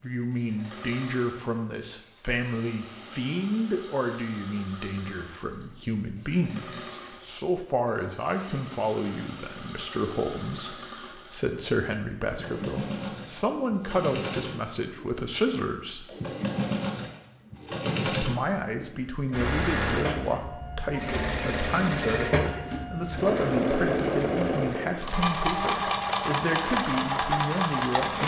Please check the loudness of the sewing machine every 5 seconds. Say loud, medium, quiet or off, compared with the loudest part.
quiet, quiet, medium, loud, loud, loud.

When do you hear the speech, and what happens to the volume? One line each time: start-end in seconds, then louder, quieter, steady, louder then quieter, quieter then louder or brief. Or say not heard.
0.0-16.1 steady
18.1-28.2 steady.